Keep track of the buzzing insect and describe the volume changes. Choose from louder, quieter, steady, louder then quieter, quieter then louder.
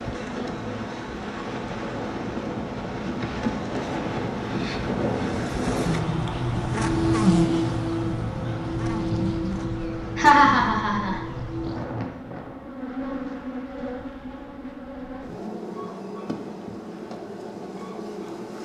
louder then quieter.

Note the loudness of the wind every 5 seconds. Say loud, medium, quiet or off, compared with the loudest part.
loud, loud, medium, off.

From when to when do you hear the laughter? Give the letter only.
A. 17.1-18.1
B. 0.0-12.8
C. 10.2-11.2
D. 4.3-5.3
C.